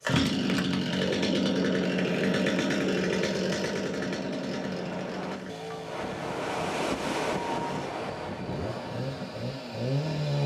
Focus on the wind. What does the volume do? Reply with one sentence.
The loudness of the wind goes up, then down.